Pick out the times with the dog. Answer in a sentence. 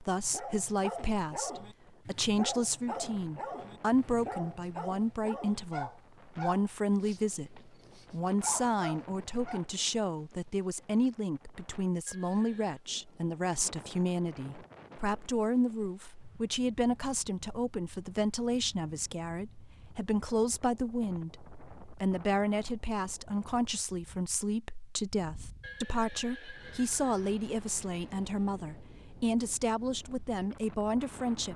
The dog can be heard from 0.1 to 9.7 s.